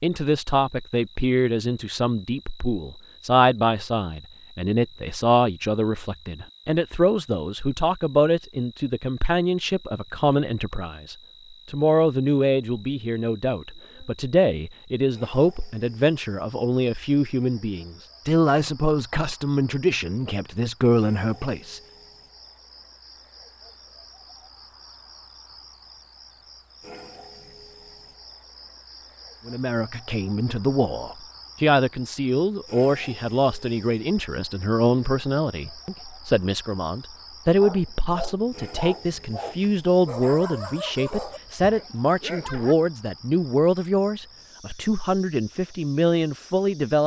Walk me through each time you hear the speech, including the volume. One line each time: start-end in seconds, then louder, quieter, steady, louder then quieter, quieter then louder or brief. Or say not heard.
0.0-21.8 steady
29.4-47.0 steady.